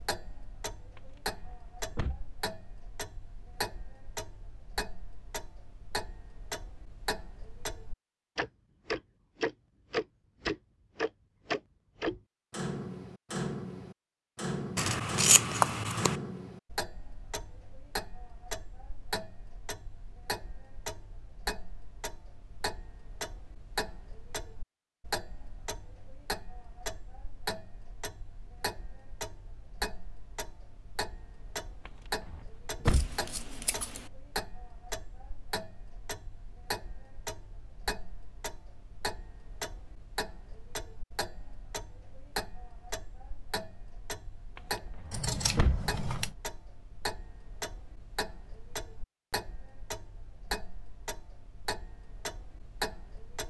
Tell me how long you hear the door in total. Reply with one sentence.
You can hear the door for 4 seconds altogether.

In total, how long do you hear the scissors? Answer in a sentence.
You can hear the scissors for 4 seconds altogether.